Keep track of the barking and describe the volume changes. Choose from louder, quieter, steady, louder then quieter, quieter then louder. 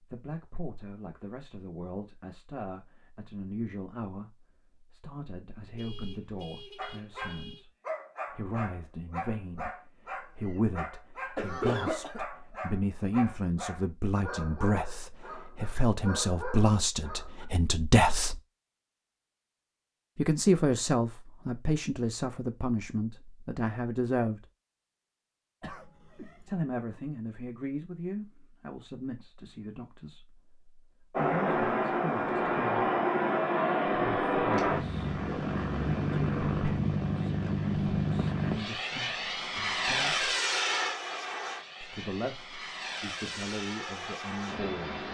steady.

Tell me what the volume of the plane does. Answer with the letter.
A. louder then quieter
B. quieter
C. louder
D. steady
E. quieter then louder
B.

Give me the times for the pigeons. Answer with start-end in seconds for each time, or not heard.
not heard.